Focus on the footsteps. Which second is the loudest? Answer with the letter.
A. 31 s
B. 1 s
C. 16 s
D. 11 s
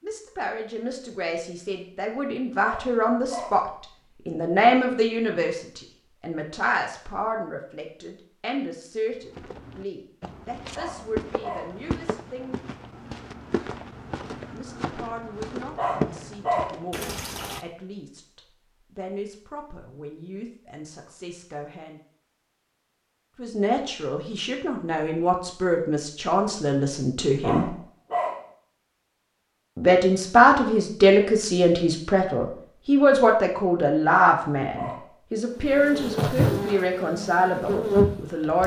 C.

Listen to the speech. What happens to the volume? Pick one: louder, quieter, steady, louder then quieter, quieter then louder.
quieter then louder.